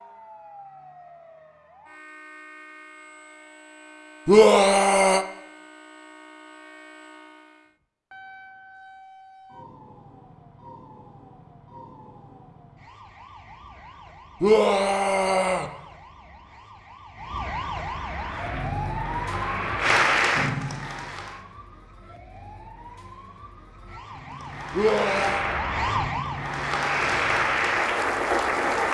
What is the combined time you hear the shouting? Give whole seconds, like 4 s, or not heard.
3 s.